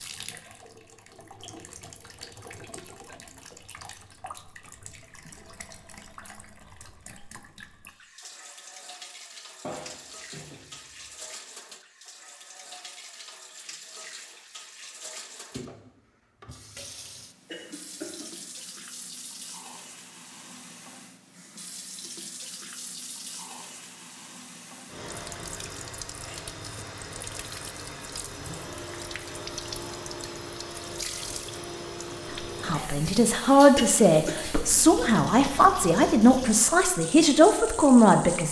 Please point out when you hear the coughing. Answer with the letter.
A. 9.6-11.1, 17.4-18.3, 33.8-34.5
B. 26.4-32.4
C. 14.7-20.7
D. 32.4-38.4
A.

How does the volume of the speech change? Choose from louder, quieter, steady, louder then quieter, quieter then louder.
steady.